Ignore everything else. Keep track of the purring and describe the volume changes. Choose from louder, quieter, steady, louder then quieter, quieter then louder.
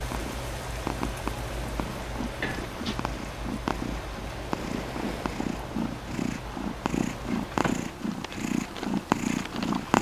louder.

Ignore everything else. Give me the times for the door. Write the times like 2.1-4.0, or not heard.
2.4-3.0, 7.5-7.9.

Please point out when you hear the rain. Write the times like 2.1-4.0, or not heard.
0.0-9.9.